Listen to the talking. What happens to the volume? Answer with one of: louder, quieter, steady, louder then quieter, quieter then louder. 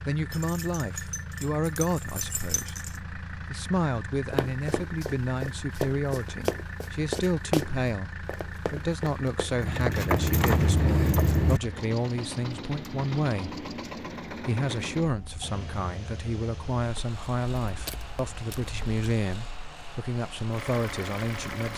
steady.